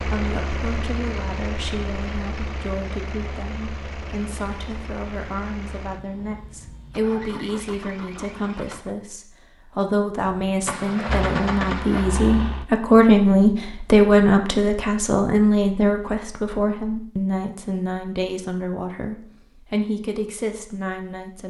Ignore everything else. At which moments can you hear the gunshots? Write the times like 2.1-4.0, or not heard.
10.3-12.1.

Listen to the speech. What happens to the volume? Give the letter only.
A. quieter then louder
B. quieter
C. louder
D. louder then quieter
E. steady
D.